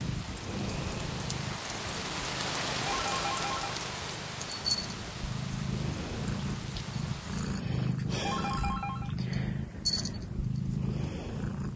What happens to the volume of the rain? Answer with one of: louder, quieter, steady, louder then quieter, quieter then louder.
louder then quieter.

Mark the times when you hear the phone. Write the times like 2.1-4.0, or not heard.
2.7-3.8, 8.1-9.1.